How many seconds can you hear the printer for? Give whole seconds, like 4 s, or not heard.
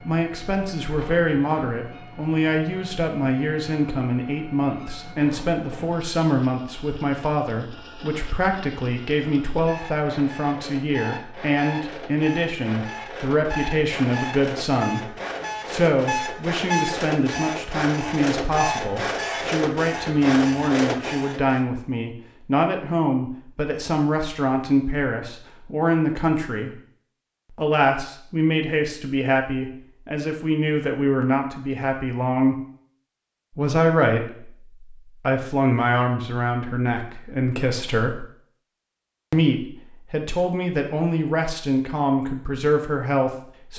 22 s.